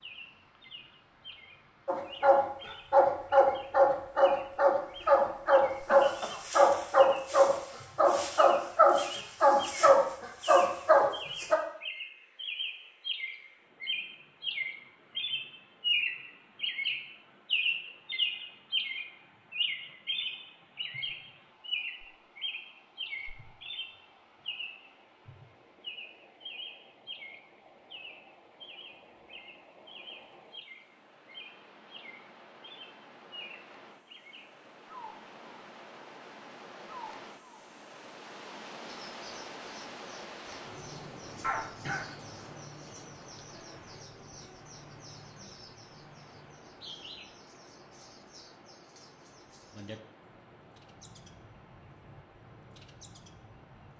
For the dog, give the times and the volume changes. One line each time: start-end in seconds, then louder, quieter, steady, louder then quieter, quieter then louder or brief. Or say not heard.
1.9-11.6 steady.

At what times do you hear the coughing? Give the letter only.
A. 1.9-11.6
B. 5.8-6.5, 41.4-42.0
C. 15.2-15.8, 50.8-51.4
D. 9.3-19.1
B.